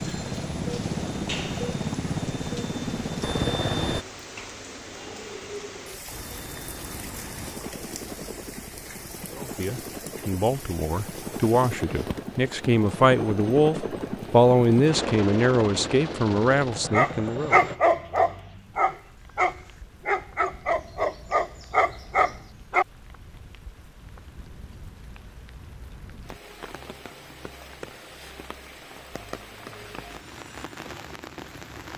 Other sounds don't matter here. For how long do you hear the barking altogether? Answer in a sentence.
The barking can be heard for 6 seconds in total.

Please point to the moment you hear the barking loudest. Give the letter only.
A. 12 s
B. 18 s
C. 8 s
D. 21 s
B.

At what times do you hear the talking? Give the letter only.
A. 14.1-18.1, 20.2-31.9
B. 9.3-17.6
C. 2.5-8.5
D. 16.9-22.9
B.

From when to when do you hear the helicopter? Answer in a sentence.
You can hear the helicopter from 0.0 to 4.0 s and from 6.1 to 17.8 s.